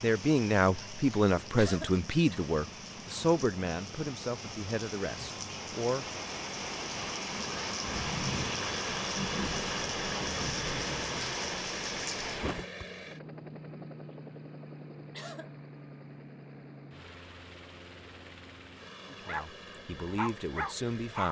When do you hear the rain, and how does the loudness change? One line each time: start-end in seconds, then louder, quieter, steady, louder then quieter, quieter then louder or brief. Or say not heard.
0.0-12.7 louder.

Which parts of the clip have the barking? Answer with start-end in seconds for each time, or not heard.
19.2-21.2.